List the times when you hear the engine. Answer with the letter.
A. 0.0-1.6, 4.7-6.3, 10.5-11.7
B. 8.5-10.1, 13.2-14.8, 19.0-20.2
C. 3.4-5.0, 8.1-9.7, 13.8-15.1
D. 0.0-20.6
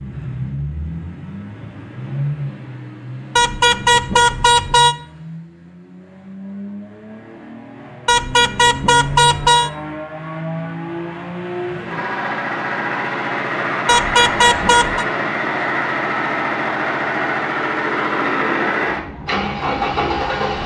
D.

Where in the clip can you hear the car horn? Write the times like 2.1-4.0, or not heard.
3.4-5.0, 8.1-9.7, 13.8-15.1.